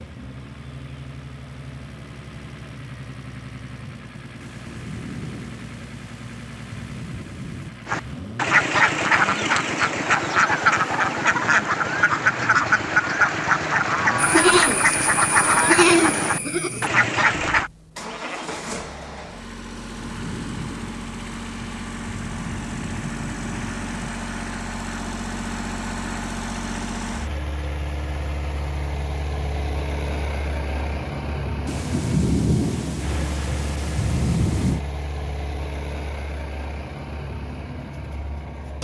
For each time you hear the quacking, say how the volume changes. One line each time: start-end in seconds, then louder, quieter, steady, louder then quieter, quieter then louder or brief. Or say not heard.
7.8-17.7 steady.